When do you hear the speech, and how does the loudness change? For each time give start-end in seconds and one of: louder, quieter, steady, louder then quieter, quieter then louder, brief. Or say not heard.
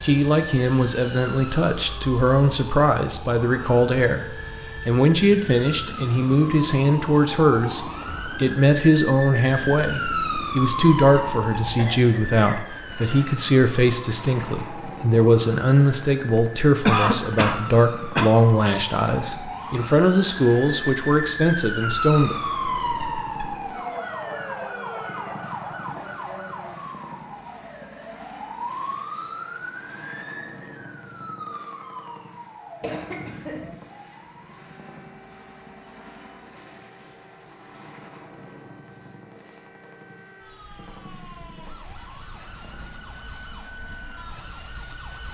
0.0-22.4 steady.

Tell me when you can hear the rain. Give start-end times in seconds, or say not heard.
not heard.